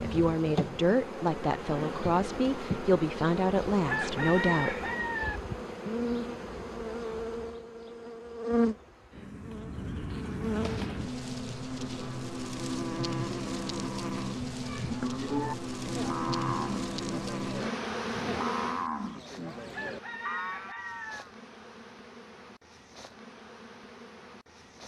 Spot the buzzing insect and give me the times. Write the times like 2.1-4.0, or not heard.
0.0-24.8.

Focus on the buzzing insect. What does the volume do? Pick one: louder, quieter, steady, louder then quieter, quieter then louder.
quieter.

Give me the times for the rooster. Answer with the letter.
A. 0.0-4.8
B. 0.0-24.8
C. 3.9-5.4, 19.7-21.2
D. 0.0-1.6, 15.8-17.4
C.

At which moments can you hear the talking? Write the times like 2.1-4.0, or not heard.
0.0-4.8.